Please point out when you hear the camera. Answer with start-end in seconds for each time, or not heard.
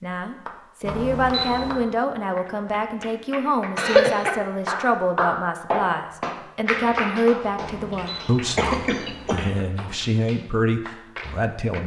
0.8-1.8, 7.5-9.4.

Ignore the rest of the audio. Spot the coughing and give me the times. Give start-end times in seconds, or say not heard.
3.8-4.3, 8.1-9.4.